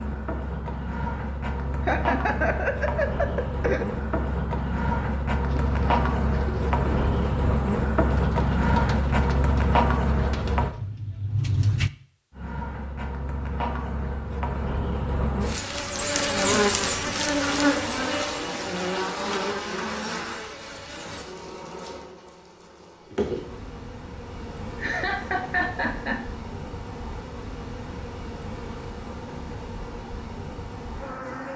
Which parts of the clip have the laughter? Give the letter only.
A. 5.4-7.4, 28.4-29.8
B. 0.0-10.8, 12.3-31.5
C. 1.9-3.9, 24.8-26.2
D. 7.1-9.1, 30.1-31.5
C.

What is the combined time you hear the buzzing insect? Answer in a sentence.
The buzzing insect can be heard for 30 seconds in total.